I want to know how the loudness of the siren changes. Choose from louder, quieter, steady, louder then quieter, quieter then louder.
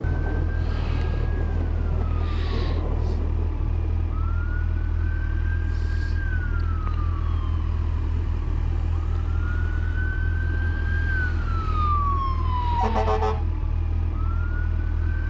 louder.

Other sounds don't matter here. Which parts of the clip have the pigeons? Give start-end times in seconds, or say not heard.
not heard.